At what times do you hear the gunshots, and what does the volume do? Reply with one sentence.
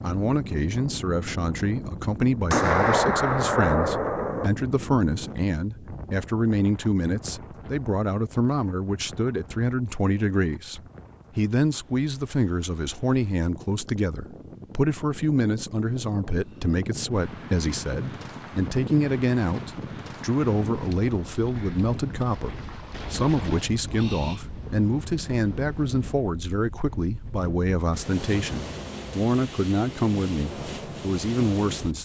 You can hear the gunshots briefly from 2.5 to 4.5 s; and from 20.5 to 24.6 s, getting louder.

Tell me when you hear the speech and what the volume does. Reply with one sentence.
The speech can be heard from 0.0 to 31.9 s, at a steady volume.